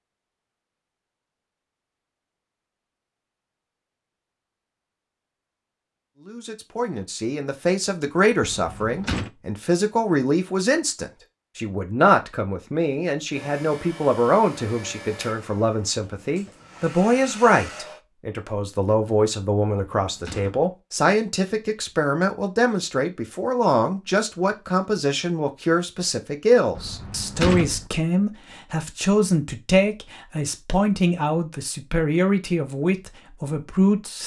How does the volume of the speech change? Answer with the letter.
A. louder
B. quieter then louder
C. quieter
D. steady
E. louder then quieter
D.